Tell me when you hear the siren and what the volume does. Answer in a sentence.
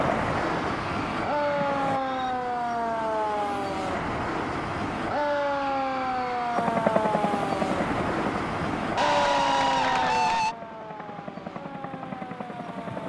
You can hear the siren from 0.0 to 13.0 s, getting quieter.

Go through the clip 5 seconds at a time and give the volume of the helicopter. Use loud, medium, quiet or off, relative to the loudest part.
loud, loud, medium.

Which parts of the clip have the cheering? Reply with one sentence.
The cheering can be heard from 0.3 to 2.4 s, from 5.1 to 6.7 s and from 8.9 to 10.6 s.